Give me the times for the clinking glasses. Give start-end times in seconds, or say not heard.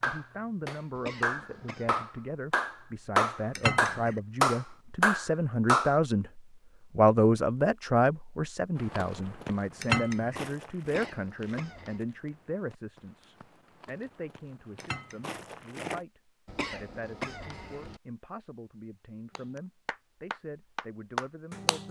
3.5-4.2, 9.8-10.4, 14.8-15.3.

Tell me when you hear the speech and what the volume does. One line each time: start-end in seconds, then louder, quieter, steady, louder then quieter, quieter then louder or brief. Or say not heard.
0.0-21.8 louder then quieter.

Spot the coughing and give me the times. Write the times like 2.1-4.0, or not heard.
0.9-2.0, 10.8-12.0, 16.4-18.0.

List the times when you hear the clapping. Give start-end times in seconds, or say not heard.
0.0-6.0, 19.4-21.8.